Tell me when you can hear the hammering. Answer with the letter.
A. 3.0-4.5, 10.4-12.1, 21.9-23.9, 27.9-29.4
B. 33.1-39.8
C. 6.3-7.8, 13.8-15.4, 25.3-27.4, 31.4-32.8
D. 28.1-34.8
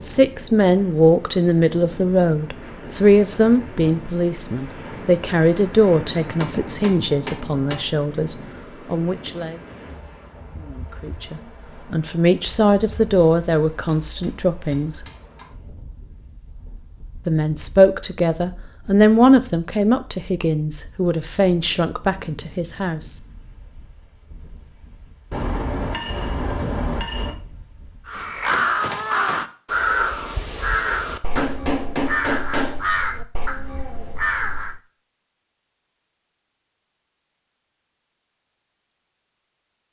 C.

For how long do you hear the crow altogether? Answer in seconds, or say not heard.
7 s.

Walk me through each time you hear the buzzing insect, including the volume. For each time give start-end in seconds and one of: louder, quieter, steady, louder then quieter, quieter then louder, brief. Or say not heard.
not heard.